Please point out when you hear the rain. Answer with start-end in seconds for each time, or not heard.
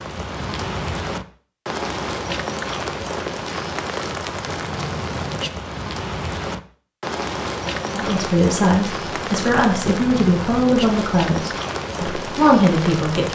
0.0-13.3.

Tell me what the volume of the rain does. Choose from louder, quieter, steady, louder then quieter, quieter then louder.
steady.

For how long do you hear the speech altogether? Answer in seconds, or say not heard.
5 s.